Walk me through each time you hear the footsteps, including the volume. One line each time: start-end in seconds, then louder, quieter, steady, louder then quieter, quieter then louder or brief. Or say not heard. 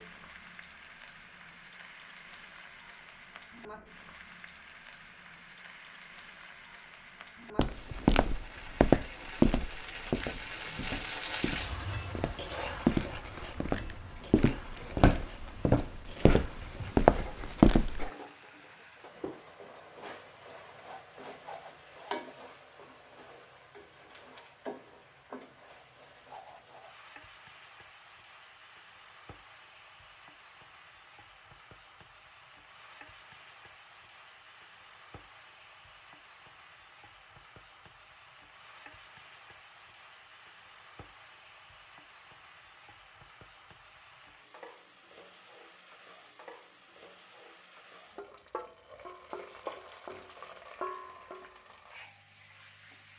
7.5-18.1 quieter then louder.